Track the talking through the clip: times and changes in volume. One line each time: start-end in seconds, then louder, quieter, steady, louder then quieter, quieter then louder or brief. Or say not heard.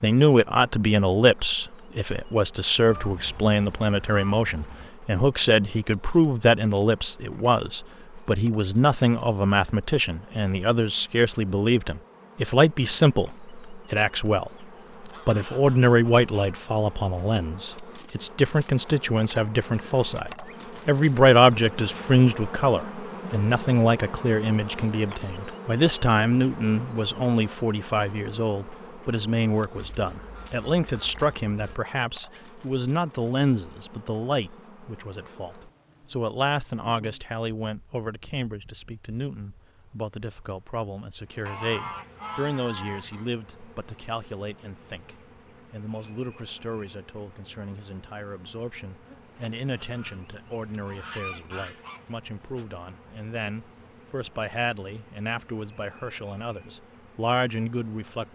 0.0-58.2 quieter.